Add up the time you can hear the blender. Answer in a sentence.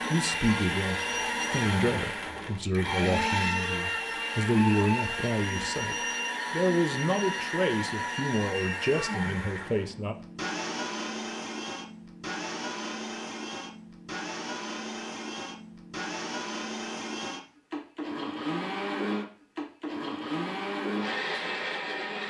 You can hear the blender for 22 seconds altogether.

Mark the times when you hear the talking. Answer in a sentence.
The talking can be heard from 0.1 to 10.2 s.